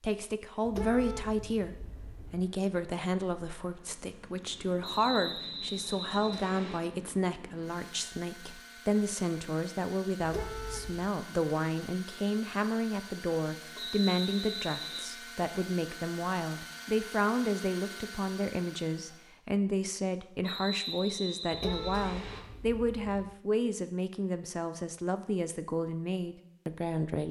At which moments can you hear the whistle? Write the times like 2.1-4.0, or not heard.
4.8-6.8, 13.8-15.1, 20.4-22.4.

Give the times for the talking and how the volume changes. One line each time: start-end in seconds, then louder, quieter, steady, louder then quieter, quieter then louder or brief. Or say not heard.
0.0-27.2 steady.